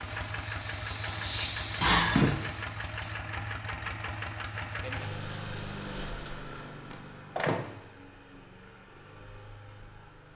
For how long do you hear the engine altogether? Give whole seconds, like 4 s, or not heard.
10 s.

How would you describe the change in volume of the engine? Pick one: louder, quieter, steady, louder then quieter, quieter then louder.
quieter.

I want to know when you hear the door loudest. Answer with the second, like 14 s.
2 s.